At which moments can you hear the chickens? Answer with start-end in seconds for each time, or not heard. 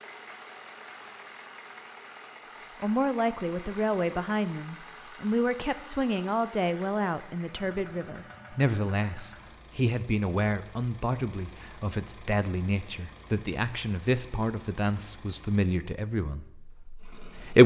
not heard.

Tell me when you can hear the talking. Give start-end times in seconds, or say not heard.
2.8-17.6.